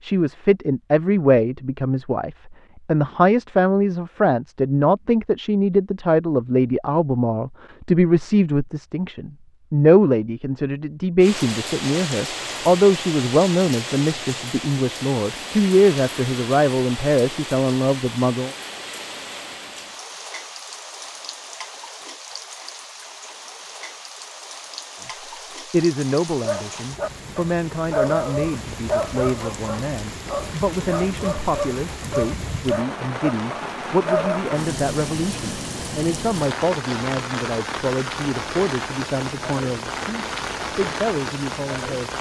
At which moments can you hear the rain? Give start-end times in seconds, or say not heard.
11.2-42.1.